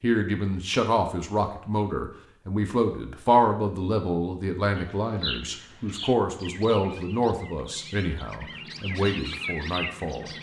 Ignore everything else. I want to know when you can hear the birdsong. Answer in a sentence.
You can hear the birdsong from 4.8 to 10.3 s.